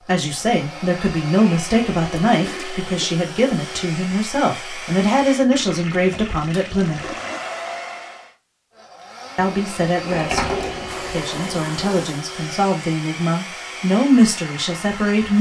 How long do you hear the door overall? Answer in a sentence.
You can hear the door for 2 seconds altogether.